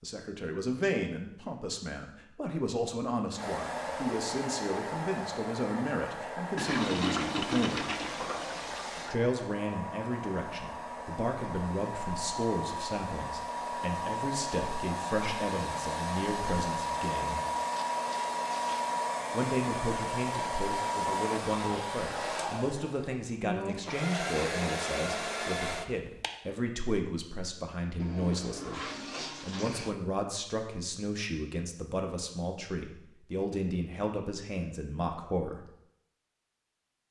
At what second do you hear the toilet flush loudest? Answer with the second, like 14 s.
7 s.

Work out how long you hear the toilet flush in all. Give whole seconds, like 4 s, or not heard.
6 s.